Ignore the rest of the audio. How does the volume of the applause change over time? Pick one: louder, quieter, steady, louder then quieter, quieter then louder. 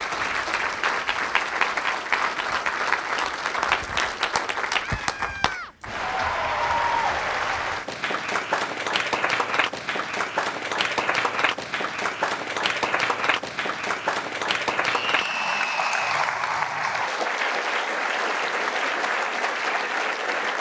steady.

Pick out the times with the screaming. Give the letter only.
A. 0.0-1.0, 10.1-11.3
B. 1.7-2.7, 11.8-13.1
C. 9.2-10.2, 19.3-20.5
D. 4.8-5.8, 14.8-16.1
D.